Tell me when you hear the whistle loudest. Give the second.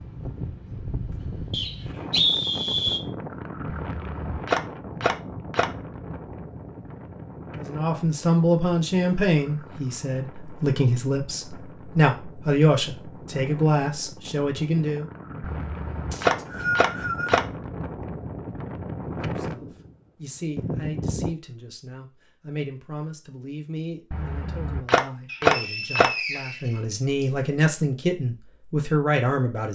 2 s.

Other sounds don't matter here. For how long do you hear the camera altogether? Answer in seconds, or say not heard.
6 s.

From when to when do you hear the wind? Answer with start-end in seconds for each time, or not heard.
0.0-21.4.